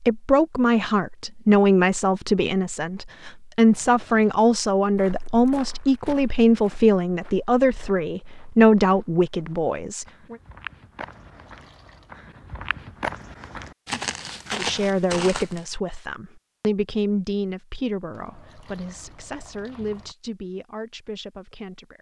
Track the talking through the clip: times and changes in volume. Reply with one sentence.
You can hear the talking from 0.0 to 10.3 s, at a steady volume; and from 14.6 to 21.9 s, getting quieter.